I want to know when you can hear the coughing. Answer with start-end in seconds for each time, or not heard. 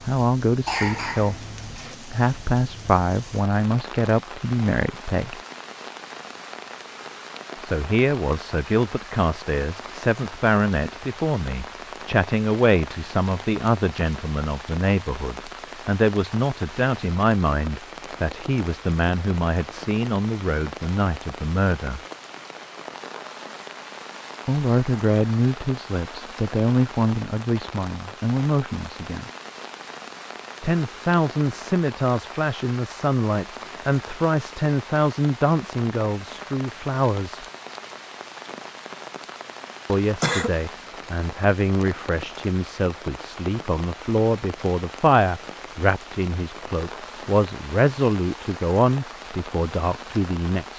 0.7-1.9, 39.9-40.5.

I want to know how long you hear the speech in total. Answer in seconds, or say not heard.
42 s.